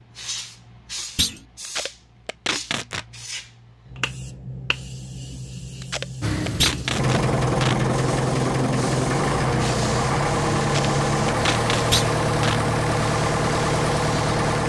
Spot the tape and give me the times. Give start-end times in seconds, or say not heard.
1.6-3.0, 5.8-7.8, 10.6-12.6.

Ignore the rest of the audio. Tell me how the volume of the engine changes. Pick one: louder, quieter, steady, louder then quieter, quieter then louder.
steady.